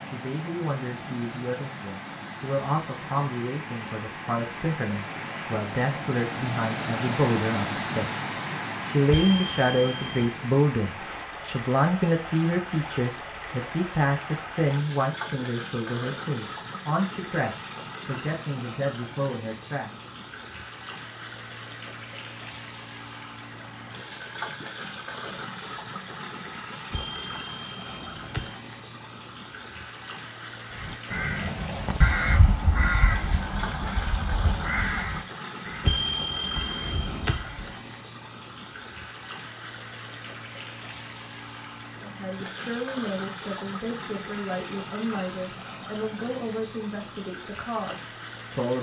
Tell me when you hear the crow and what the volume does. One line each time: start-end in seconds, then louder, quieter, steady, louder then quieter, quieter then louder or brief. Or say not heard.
30.8-37.7 quieter.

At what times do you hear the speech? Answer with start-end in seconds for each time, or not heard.
0.0-19.9, 42.0-48.7.